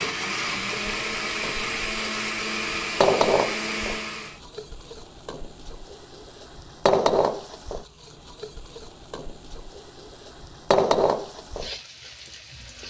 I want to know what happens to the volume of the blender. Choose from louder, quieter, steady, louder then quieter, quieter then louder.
steady.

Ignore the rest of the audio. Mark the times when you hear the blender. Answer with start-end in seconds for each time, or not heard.
0.0-4.4.